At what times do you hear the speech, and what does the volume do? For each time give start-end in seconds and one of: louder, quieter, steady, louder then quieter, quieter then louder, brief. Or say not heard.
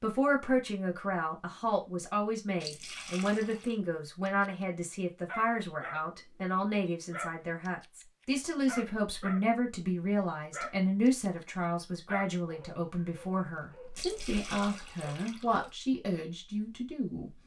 0.0-17.3 steady.